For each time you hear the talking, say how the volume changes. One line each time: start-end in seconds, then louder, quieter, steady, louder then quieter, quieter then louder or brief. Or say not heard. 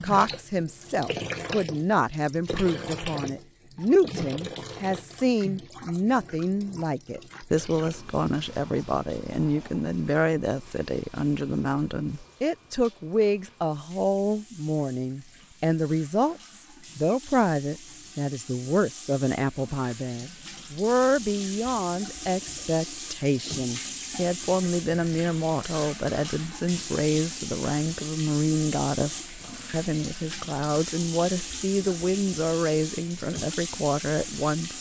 0.0-34.7 steady.